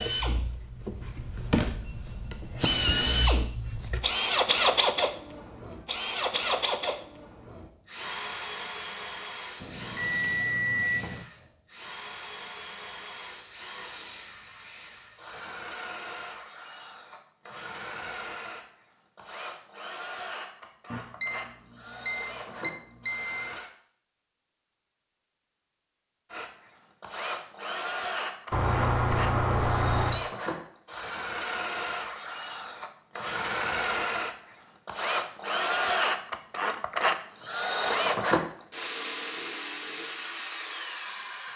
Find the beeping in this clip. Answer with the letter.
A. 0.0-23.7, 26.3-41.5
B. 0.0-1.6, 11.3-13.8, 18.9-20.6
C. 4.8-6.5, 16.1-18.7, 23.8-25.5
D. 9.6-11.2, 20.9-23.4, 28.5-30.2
D.